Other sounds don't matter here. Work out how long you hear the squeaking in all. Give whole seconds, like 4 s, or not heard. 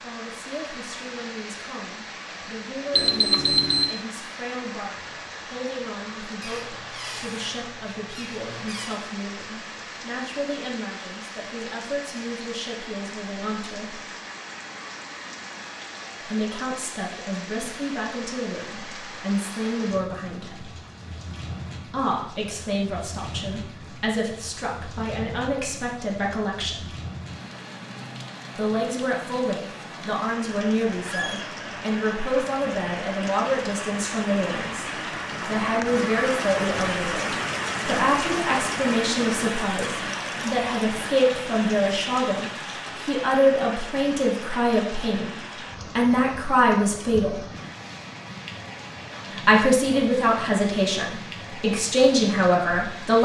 3 s.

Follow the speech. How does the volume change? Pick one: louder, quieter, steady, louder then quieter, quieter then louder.
louder.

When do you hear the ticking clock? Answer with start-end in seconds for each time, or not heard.
not heard.